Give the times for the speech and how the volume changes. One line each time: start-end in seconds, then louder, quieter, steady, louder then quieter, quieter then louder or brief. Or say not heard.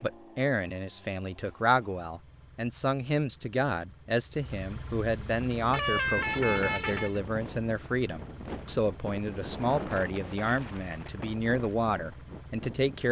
0.0-13.0 steady.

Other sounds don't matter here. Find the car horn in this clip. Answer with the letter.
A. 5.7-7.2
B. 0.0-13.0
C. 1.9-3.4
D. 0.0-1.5
A.